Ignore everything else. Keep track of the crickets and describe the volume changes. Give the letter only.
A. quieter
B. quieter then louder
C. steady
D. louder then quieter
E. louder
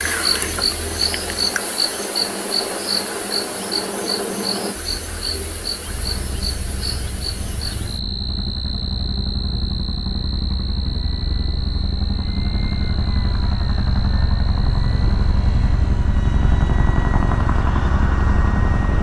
A.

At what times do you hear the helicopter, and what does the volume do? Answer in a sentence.
You can hear the helicopter from 0.0 to 18.9 s, getting louder.